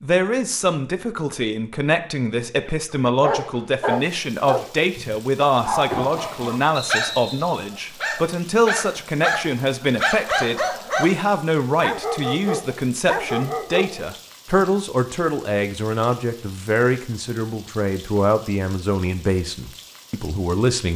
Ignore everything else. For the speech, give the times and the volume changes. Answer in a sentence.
The speech can be heard from 0.0 to 20.9 s, at a steady volume.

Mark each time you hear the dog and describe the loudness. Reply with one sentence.
You can hear the dog from 2.6 to 14.1 s, at a steady volume.